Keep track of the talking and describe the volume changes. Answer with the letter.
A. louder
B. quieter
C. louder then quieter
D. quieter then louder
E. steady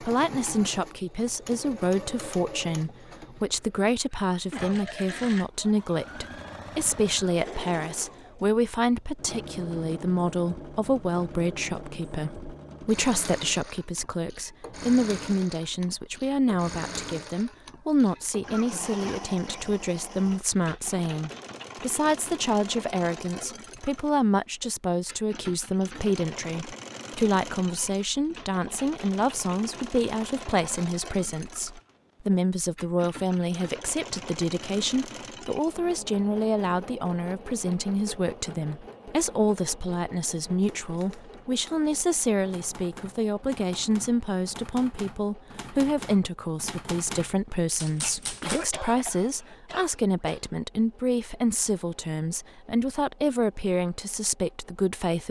E.